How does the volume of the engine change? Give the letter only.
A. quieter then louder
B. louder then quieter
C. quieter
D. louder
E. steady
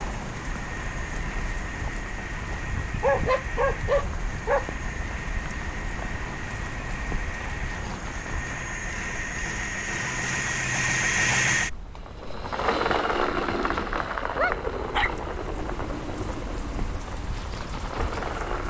B.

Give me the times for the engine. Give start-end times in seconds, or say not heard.
0.0-18.6.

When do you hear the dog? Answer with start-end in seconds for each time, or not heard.
2.8-4.7, 13.5-15.1.